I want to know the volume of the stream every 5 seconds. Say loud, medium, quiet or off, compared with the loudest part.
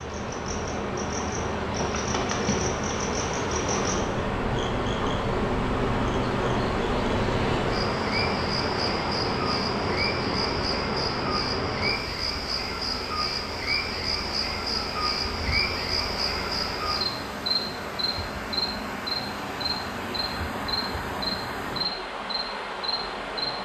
loud, loud, medium, medium, medium.